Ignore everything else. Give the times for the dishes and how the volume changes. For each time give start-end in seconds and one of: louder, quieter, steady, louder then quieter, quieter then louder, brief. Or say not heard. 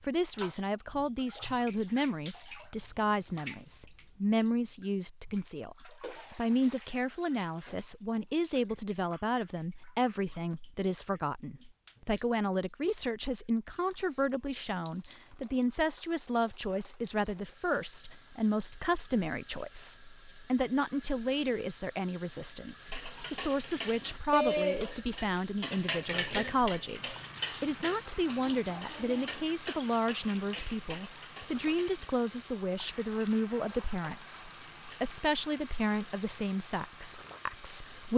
22.9-35.1 quieter.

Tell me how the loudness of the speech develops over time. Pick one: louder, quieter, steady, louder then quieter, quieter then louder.
steady.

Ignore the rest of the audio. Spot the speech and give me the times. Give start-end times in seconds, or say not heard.
0.0-38.1.